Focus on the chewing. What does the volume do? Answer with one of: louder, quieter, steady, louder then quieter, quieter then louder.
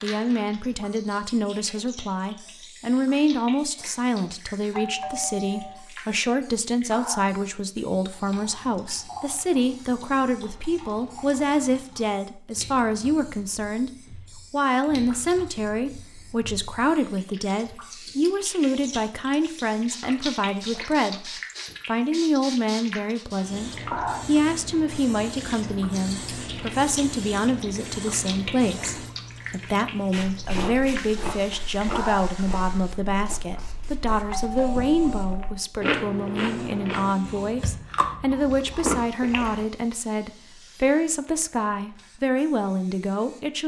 quieter then louder.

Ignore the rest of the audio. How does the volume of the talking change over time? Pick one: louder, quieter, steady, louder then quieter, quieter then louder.
steady.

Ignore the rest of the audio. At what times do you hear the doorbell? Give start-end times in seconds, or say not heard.
4.7-5.8, 34.2-35.6.